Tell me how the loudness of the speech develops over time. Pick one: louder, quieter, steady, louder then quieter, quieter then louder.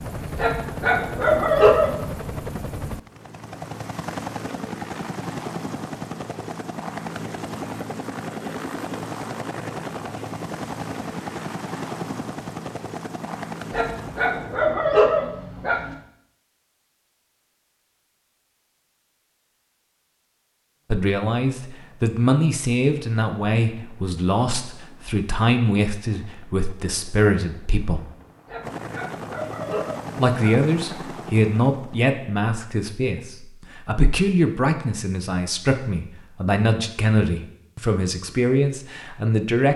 steady.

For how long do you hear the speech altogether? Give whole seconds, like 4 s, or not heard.
17 s.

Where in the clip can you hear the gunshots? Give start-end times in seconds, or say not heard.
not heard.